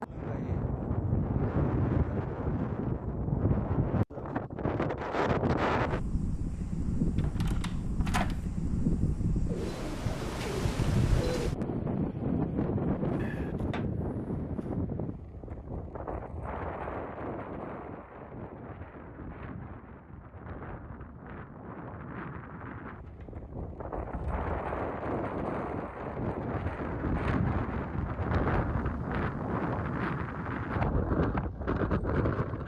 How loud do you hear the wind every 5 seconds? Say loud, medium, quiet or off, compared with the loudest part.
loud, loud, loud, medium, medium, loud, loud.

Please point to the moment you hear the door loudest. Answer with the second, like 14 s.
8 s.